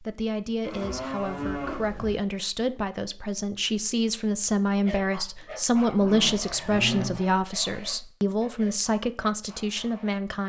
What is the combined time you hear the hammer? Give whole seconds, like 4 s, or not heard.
not heard.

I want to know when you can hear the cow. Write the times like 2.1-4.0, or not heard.
0.7-2.2, 6.0-7.2.